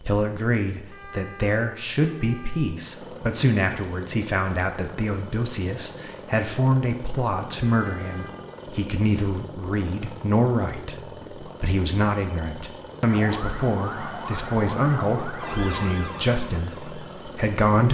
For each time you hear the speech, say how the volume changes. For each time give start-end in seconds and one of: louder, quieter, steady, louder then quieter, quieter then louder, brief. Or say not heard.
0.0-17.8 steady.